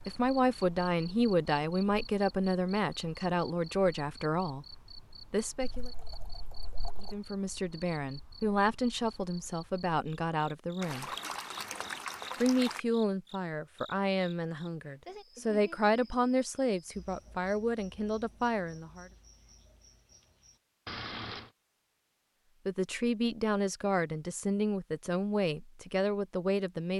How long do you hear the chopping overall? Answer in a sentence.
The chopping can't be heard in this clip.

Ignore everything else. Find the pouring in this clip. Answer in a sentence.
The pouring can be heard from 5.6 to 7.2 s, from 10.8 to 12.8 s and from 20.9 to 21.5 s.